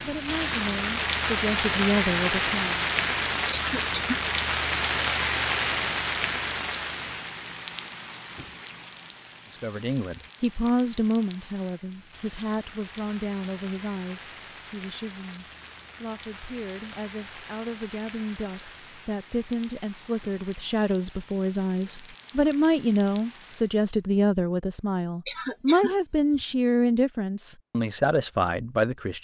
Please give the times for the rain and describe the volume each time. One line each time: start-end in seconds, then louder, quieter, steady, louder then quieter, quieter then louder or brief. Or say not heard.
0.0-23.9 quieter.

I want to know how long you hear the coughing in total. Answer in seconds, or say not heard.
2 s.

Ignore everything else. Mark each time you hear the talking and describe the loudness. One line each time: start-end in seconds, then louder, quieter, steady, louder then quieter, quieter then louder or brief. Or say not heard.
0.0-2.9 brief
9.5-29.1 quieter then louder.